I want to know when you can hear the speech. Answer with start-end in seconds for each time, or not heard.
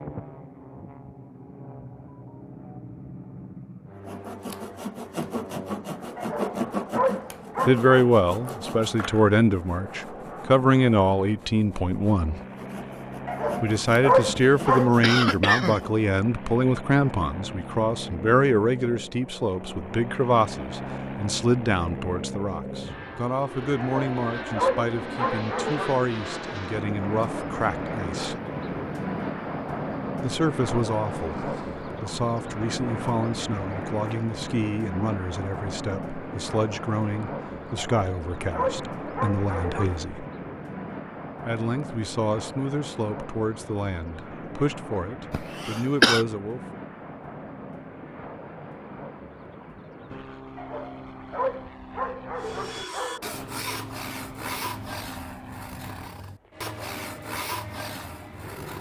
7.7-12.4, 13.6-28.4, 30.2-40.2, 41.5-46.6.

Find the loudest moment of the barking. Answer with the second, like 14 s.
14 s.